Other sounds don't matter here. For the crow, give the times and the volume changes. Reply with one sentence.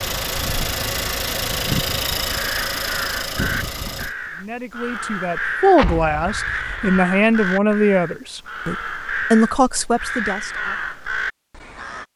The crow can be heard from 2.2 to 12.1 s, at a steady volume.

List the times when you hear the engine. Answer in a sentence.
You can hear the engine from 0.0 to 4.2 s.